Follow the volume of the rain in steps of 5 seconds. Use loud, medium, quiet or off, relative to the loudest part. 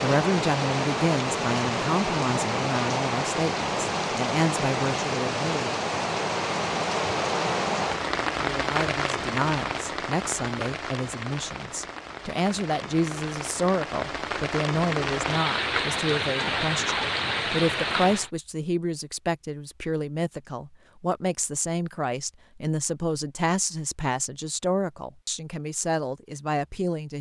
loud, loud, medium, loud, off, off.